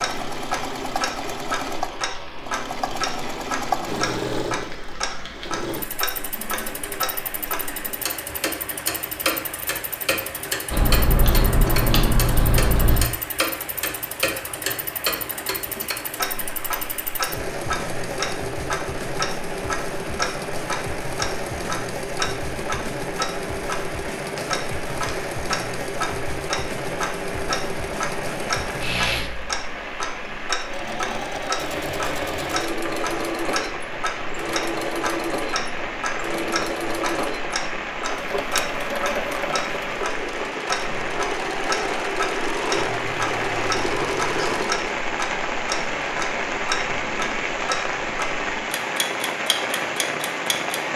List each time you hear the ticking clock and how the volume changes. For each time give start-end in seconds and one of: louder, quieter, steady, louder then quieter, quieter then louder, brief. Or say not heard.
0.0-50.9 steady.